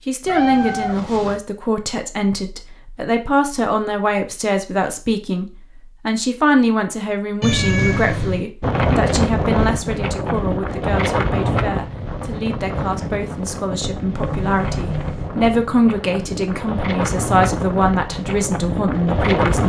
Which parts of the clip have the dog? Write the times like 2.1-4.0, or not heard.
not heard.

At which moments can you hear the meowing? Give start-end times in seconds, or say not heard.
0.2-1.4, 7.4-8.4, 14.2-15.3.